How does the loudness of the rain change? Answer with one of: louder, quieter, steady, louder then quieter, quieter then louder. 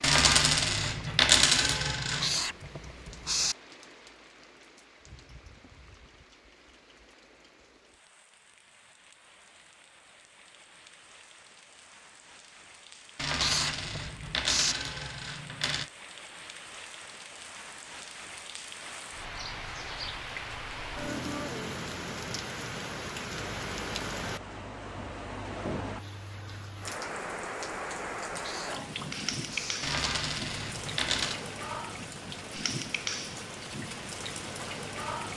louder.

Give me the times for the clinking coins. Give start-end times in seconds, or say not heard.
0.0-2.4, 13.2-15.9, 29.8-31.4.